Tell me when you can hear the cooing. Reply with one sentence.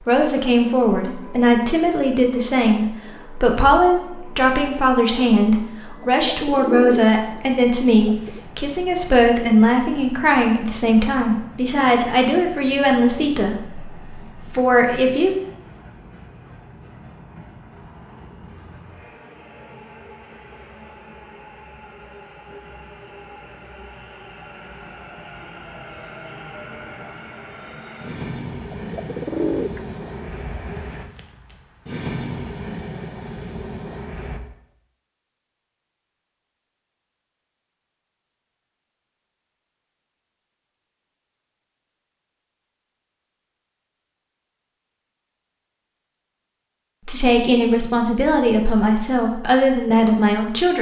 The cooing can be heard from 6.0 to 8.4 s and from 28.7 to 30.4 s.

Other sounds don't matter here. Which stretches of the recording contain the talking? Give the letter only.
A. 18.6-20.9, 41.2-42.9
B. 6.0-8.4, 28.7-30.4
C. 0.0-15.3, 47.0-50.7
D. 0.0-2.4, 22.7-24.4
C.